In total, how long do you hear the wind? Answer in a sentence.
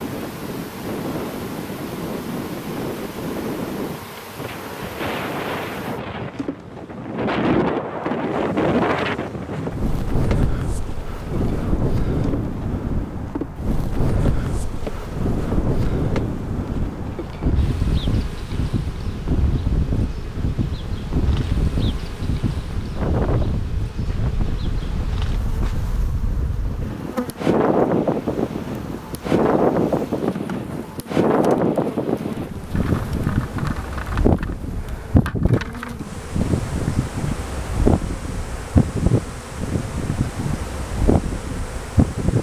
You can hear the wind for 42 seconds altogether.